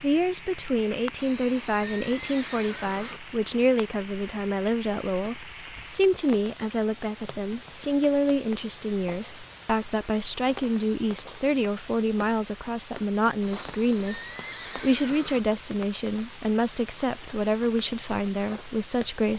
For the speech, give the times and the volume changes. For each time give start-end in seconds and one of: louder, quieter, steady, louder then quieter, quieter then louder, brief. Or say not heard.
0.0-19.3 steady.